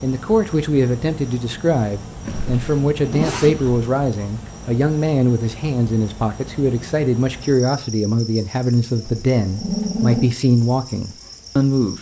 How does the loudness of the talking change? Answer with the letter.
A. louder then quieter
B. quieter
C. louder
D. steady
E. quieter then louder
D.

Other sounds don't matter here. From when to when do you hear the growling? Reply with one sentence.
The growling can be heard from 9.1 to 10.3 s.